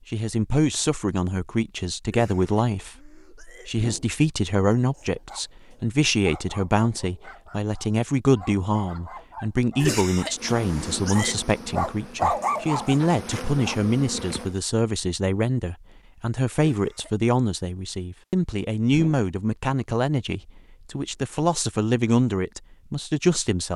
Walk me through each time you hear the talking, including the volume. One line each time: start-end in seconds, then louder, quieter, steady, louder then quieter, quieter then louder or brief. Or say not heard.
0.1-23.7 steady.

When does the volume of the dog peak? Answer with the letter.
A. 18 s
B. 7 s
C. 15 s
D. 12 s
D.